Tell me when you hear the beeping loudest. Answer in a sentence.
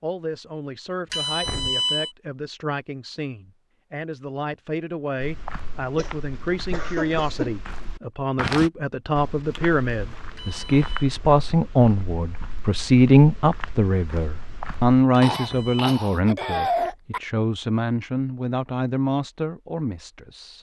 The loudest moment of the beeping is at 2 seconds.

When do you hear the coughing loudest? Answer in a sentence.
The loudest moment of the coughing is at 17 seconds.